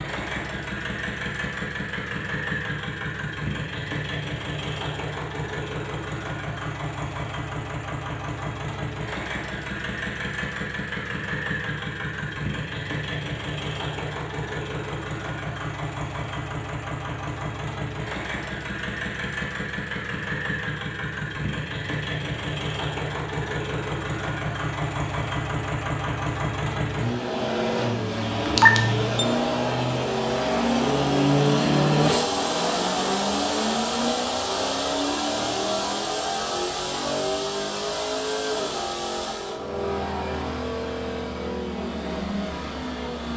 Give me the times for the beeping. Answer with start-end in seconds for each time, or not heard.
28.4-29.2.